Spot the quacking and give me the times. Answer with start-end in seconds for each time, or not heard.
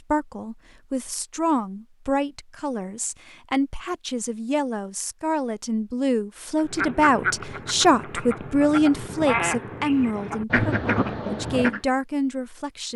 6.5-11.8.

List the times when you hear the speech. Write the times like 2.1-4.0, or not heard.
0.1-12.9.